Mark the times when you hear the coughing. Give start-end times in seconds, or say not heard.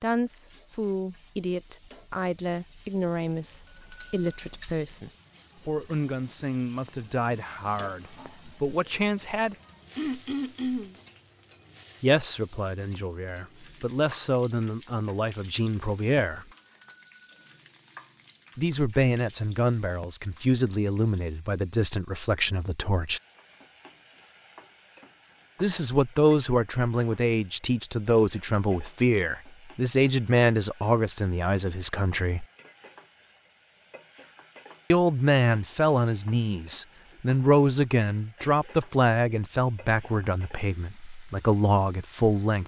9.9-10.9, 38.4-39.0.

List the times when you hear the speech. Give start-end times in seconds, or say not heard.
0.0-9.6, 12.0-16.4, 18.6-23.2, 25.6-32.5, 34.9-42.6.